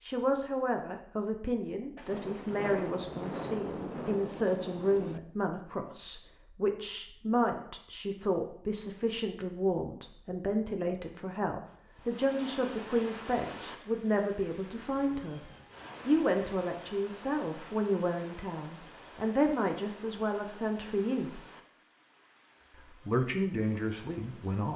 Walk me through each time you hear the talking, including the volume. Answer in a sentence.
You can hear the talking from 0.0 to 21.4 s, at a steady volume; and briefly from 22.8 to 24.7 s.